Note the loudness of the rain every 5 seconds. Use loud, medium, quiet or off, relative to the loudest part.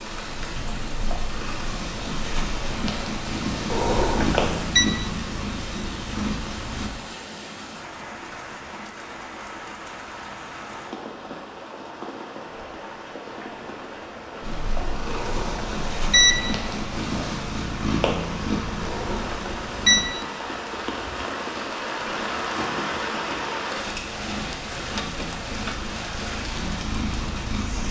medium, medium, medium, medium, loud, medium.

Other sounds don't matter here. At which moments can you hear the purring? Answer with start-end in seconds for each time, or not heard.
0.0-6.9, 14.4-20.1, 23.8-27.8.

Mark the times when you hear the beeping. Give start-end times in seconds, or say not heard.
3.7-4.9, 15.1-16.4, 18.8-20.1.